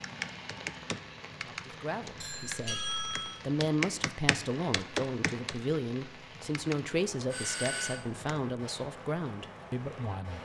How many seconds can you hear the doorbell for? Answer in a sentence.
You can hear the doorbell for 2 seconds altogether.